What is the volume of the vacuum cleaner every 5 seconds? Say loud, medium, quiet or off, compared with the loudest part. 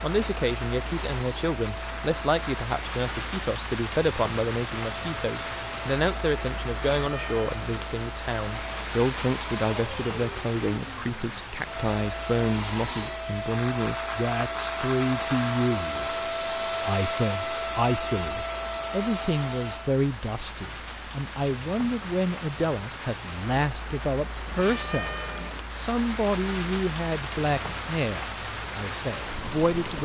medium, medium, loud, loud, off, off.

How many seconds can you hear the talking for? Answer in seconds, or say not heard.
30 s.